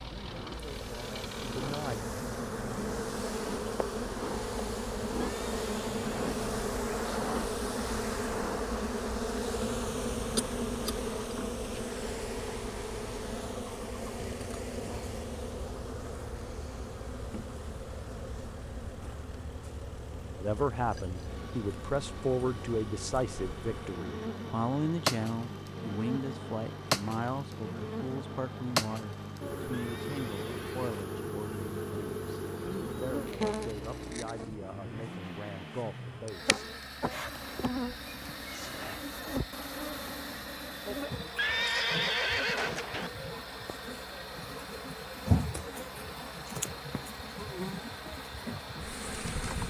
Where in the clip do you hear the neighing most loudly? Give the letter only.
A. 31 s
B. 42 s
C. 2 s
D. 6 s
B.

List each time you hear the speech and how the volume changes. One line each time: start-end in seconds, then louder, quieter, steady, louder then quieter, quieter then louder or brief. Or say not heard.
0.0-2.0 brief
20.4-36.6 quieter.